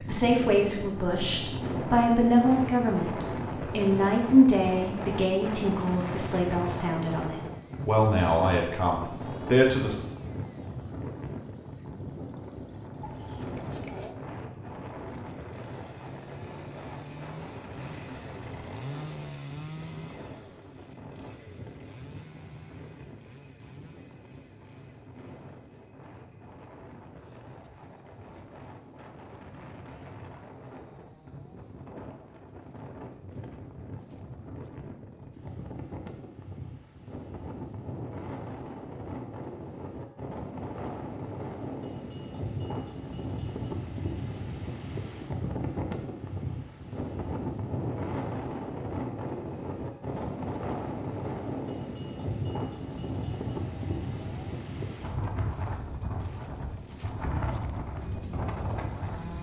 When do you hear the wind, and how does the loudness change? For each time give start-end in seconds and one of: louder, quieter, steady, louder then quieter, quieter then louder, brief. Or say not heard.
0.0-59.3 quieter then louder.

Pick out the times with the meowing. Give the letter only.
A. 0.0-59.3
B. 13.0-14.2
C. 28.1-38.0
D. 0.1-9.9
B.